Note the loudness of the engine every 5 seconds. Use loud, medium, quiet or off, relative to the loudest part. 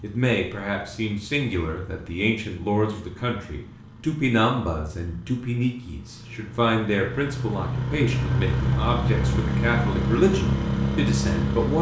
quiet, loud, loud.